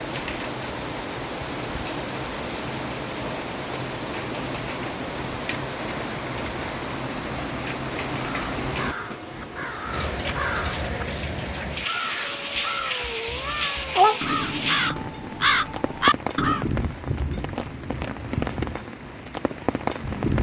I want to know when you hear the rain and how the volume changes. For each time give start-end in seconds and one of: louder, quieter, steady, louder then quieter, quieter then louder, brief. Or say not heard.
0.0-20.3 steady.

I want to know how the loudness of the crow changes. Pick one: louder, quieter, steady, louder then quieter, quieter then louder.
louder.